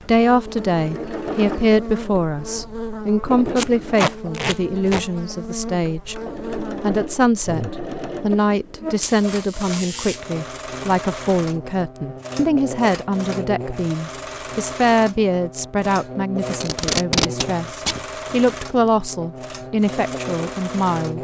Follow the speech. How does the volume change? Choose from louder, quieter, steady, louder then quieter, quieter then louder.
steady.